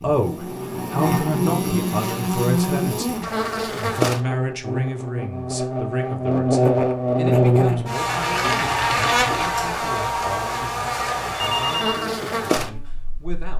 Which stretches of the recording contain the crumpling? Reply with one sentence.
The crumpling can be heard from 8.4 to 9.5 s.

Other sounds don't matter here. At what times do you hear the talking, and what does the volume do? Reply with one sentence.
The talking can be heard from 0.0 to 13.5 s, getting quieter.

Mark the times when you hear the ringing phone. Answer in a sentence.
The ringing phone can be heard from 11.3 to 12.1 s.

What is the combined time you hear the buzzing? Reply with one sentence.
The buzzing can be heard for 13 seconds in total.